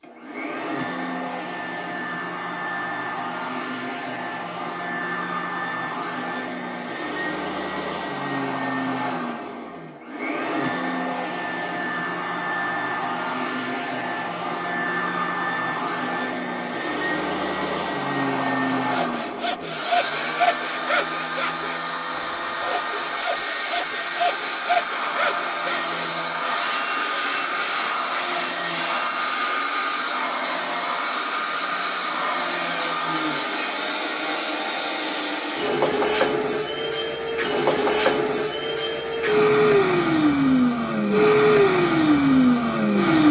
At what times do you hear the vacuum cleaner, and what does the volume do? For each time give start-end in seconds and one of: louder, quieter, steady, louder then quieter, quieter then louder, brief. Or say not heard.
0.0-43.2 louder.